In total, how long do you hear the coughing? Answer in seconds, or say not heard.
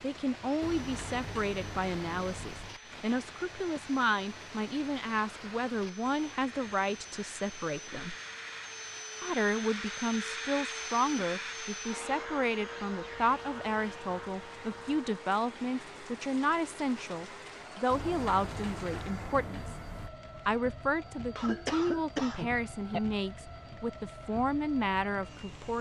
2 s.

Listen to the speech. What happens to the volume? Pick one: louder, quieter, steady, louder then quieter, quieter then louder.
steady.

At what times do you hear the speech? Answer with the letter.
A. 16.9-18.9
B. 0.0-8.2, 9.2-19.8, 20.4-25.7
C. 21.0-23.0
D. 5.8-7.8
B.